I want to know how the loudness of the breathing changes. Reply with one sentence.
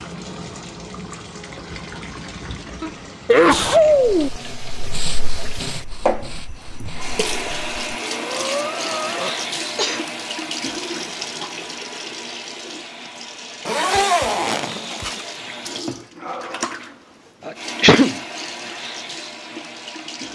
The volume of the breathing goes down, then up.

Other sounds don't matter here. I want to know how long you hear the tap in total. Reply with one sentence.
The tap can be heard for 20 seconds in total.